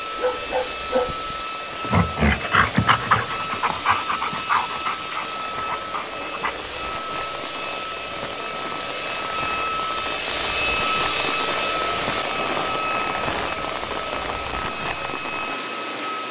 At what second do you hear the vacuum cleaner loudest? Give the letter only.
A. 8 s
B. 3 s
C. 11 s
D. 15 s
C.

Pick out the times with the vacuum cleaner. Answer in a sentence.
You can hear the vacuum cleaner from 0.0 to 16.2 s.